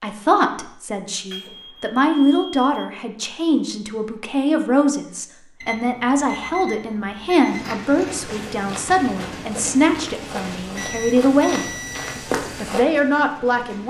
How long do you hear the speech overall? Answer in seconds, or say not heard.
14 s.